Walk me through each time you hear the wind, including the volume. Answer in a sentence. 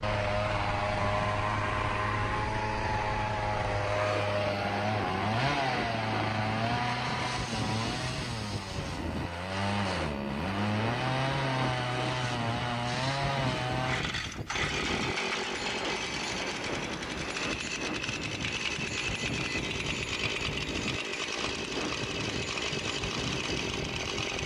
You can hear the wind from 0.0 to 24.4 s, at a steady volume.